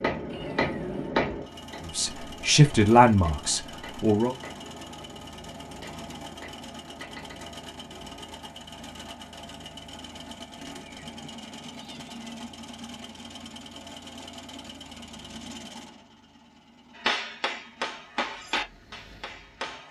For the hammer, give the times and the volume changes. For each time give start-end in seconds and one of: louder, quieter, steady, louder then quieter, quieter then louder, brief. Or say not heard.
0.0-8.3 quieter
16.9-19.8 brief.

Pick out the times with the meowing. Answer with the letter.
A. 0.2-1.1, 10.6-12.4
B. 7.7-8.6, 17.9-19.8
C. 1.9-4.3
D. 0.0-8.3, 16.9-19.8
A.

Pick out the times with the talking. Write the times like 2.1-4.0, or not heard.
1.9-4.3.